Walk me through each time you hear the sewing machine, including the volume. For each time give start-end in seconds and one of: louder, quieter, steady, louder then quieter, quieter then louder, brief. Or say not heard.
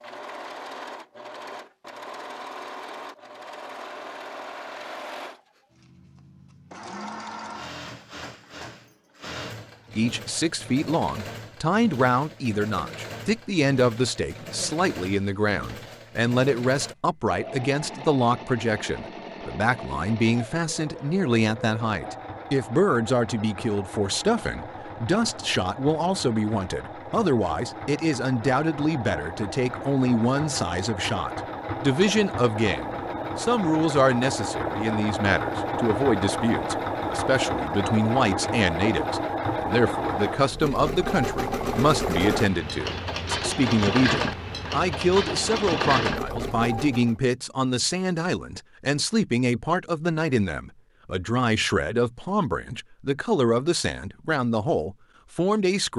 0.0-47.1 louder.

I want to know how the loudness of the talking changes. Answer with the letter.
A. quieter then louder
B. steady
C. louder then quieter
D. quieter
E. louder
B.